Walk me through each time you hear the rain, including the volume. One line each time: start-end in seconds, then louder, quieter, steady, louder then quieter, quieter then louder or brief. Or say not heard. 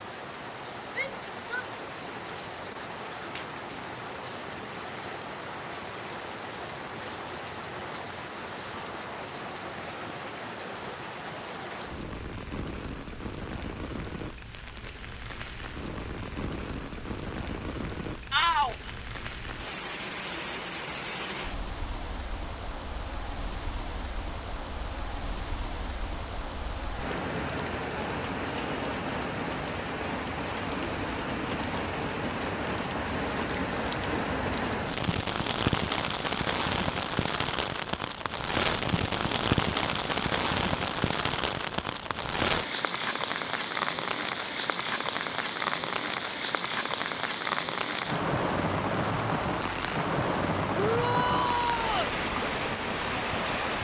0.0-53.7 louder.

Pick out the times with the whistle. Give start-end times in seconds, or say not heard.
not heard.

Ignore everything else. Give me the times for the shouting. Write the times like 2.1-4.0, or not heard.
0.9-1.6, 18.3-18.9, 50.8-52.1.